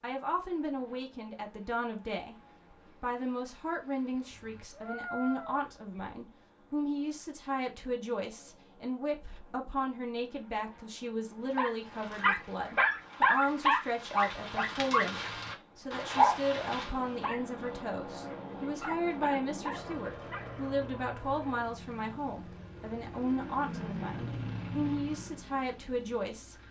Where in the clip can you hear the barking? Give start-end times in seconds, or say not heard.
11.6-20.4.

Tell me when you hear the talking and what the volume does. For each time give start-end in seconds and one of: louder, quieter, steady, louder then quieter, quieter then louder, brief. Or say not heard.
0.0-2.4 brief
3.0-26.6 steady.